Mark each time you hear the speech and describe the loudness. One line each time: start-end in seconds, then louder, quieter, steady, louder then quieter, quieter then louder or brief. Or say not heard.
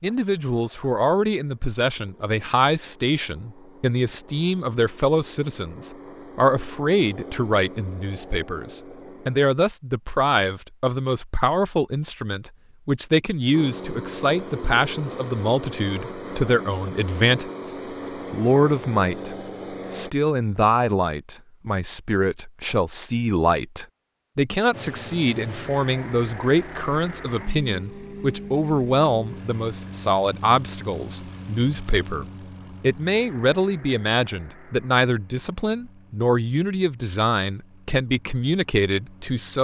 0.0-17.7 steady
18.3-39.6 steady.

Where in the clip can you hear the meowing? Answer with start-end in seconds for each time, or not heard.
not heard.